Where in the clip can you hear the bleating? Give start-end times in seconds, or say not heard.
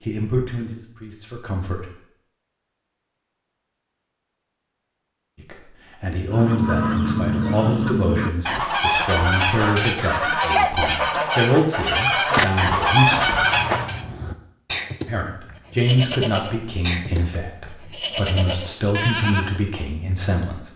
13.2-19.6.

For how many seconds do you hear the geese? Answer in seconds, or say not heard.
8 s.